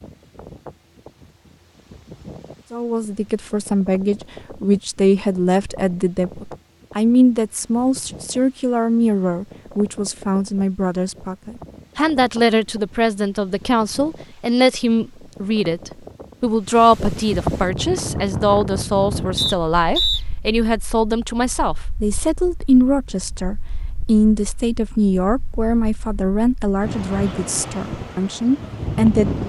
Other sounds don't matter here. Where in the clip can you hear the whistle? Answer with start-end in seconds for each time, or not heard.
19.4-20.2.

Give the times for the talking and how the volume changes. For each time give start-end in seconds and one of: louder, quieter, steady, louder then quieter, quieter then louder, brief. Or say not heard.
2.7-29.4 steady.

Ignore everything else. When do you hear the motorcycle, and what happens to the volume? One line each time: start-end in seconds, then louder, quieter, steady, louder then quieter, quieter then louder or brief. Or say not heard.
not heard.